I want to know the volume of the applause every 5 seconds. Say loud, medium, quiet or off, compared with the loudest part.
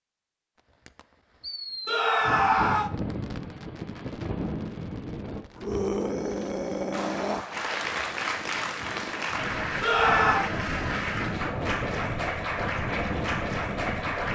off, loud, loud.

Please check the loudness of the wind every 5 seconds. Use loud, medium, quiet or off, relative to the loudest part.
loud, medium, loud.